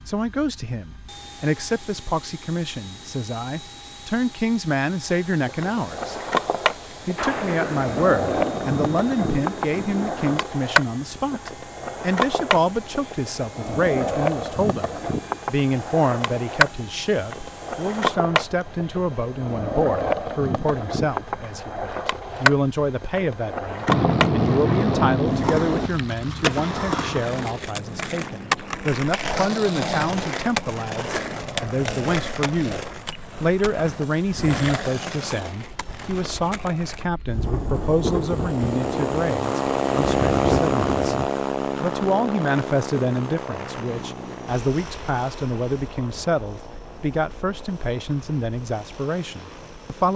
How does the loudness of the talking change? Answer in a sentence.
The loudness of the talking stays about the same.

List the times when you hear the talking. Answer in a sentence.
You can hear the talking from 0.1 to 6.2 s and from 7.0 to 50.1 s.